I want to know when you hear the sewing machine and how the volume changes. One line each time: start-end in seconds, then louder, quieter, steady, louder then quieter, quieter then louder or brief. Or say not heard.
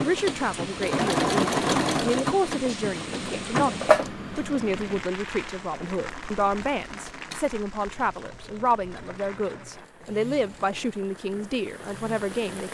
0.0-12.3 quieter.